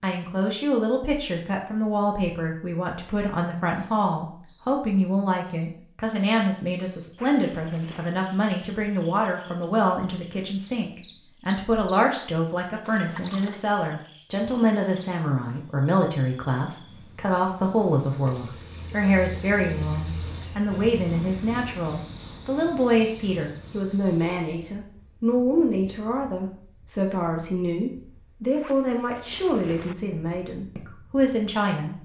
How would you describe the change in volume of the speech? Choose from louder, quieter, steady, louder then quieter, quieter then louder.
steady.